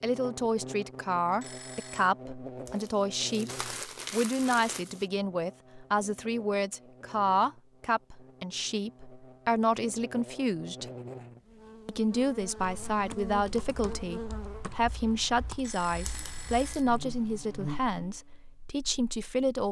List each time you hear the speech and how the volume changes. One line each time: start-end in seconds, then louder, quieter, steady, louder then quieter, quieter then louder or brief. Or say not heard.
0.0-10.9 steady
11.8-19.6 steady.